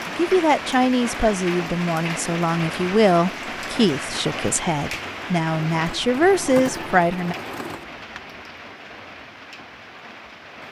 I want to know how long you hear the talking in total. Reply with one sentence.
You can hear the talking for 7 seconds altogether.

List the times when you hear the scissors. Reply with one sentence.
The scissors can't be heard in this clip.